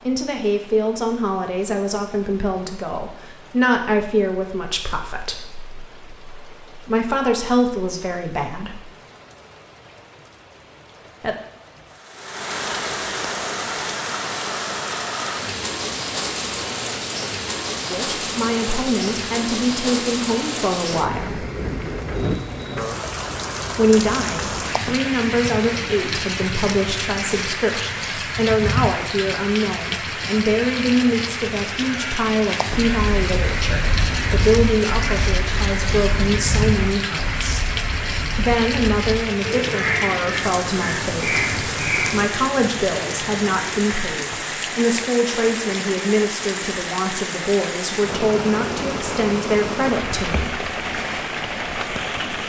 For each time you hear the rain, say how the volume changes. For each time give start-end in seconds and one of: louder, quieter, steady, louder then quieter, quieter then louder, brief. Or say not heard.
0.0-52.4 louder.